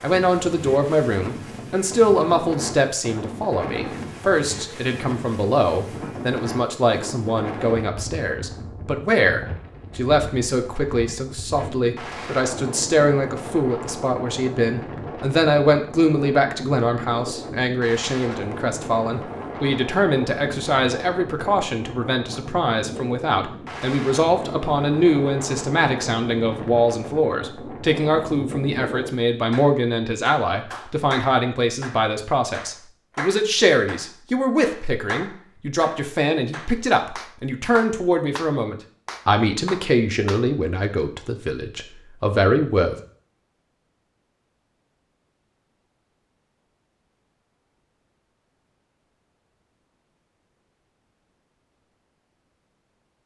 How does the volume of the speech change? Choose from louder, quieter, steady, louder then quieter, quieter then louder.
steady.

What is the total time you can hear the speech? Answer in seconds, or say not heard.
43 s.